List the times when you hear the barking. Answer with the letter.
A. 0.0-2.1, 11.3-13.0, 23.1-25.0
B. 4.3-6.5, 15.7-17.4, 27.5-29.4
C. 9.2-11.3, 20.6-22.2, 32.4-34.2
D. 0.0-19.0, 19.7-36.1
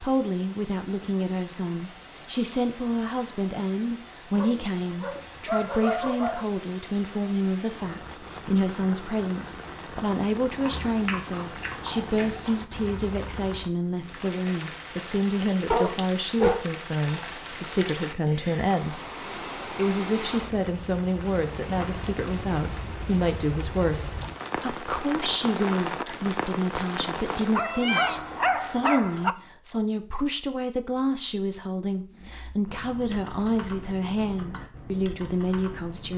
B.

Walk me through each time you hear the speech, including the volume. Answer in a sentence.
The speech can be heard from 0.0 to 19.0 s, at a steady volume; and from 19.7 to 36.1 s, at a steady volume.